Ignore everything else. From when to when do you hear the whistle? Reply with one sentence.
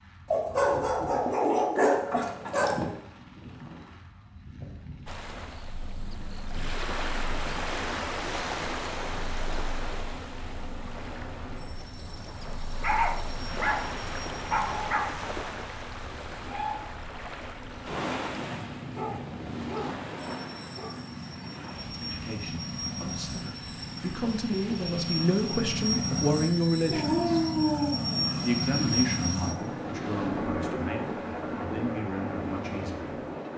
The whistle can't be heard in this clip.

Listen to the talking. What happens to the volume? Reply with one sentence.
The loudness of the talking goes up, then down.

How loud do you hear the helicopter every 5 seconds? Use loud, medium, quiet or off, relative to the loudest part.
quiet, quiet, quiet, medium, medium, loud, loud.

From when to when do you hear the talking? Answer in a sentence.
The talking can be heard from 21.9 to 27.4 s and from 28.4 to 33.2 s.